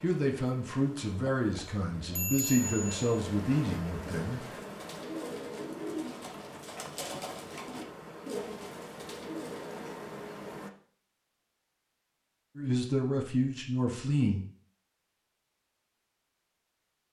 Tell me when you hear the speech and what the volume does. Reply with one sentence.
You can hear the speech from 0.0 to 4.6 s, at a steady volume; and briefly from 12.6 to 14.4 s.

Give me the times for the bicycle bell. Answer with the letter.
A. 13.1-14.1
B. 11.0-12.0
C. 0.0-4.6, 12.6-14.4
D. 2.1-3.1
D.